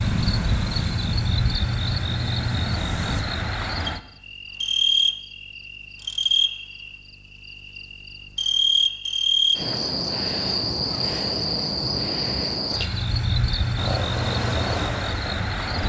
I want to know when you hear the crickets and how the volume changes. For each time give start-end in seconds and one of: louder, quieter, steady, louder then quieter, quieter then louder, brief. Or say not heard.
0.0-15.8 steady.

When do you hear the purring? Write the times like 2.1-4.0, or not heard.
0.0-3.2, 13.8-15.8.